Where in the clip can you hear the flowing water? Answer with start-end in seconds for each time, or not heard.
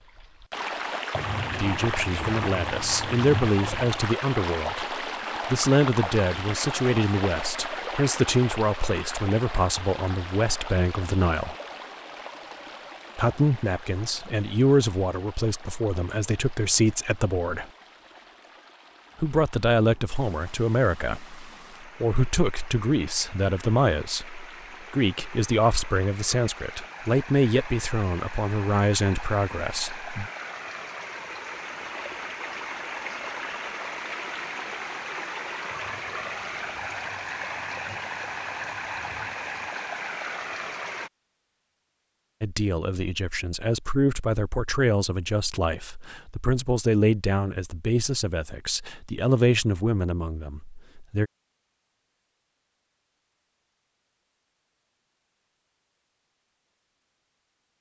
0.0-41.1.